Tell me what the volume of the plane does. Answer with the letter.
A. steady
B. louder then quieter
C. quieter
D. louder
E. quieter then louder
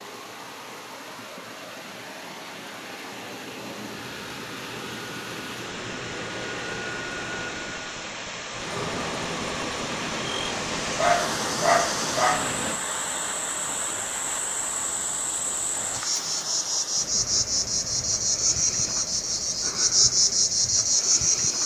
D.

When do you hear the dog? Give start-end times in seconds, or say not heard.
10.9-12.5.